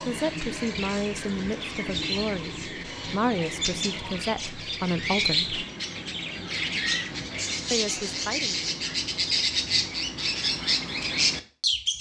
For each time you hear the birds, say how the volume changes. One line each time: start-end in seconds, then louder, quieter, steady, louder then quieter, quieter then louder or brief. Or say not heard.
0.0-11.9 louder.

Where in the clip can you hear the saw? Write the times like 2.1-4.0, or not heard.
not heard.